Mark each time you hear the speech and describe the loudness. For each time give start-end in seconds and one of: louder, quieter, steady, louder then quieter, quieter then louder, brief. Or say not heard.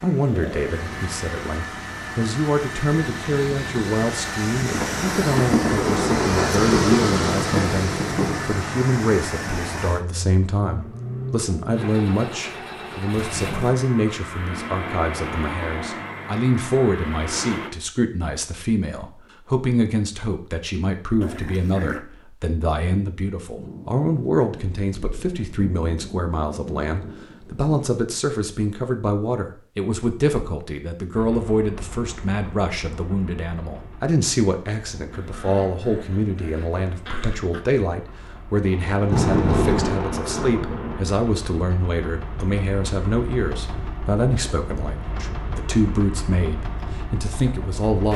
0.0-48.1 steady.